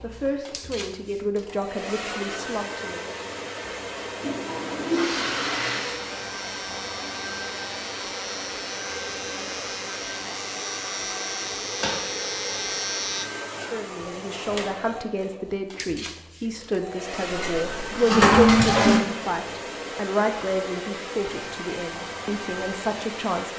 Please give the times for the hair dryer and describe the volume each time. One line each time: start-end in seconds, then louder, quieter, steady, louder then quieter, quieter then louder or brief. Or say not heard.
0.0-23.5 steady.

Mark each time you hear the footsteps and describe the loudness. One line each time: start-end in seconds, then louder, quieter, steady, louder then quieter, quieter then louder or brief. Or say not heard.
not heard.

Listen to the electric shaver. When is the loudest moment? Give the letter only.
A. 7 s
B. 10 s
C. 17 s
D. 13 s
D.